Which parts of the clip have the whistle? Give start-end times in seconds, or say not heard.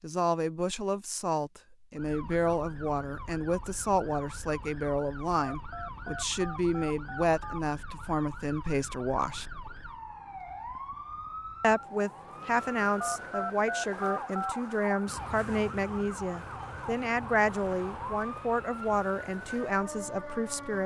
not heard.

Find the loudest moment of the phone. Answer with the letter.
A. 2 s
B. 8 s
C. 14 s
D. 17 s
C.